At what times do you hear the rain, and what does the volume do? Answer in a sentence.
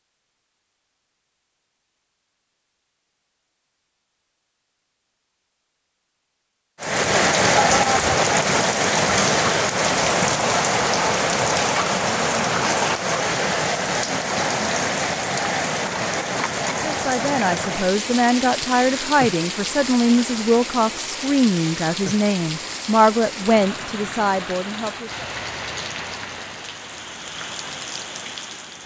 You can hear the rain from 6.8 to 28.8 s, getting quieter.